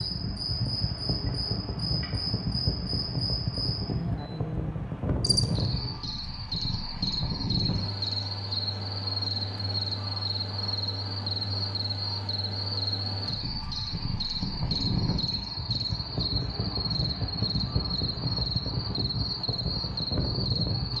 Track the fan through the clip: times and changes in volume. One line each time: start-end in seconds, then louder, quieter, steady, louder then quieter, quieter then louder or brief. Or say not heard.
0.0-20.9 quieter then louder.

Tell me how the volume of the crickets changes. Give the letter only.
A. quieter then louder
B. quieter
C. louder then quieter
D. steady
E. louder
D.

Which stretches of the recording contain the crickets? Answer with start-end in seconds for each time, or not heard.
0.0-20.9.